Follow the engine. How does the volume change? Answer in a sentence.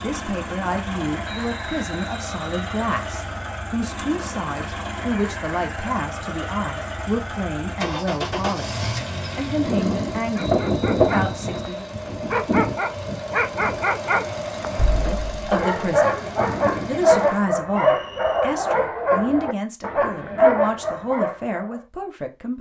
The volume of the engine goes up, then down.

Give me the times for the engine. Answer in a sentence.
The engine can be heard from 0.0 to 17.4 s.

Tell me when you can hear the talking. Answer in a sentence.
You can hear the talking from 0.0 to 11.9 s, from 14.9 to 16.2 s and from 16.9 to 22.5 s.